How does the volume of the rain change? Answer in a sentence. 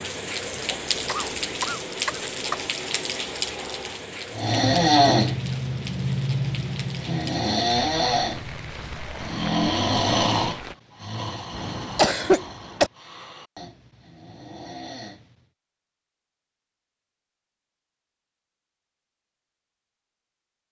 The loudness of the rain goes down.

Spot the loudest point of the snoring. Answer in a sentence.
The volume of the snoring peaks at 5 seconds.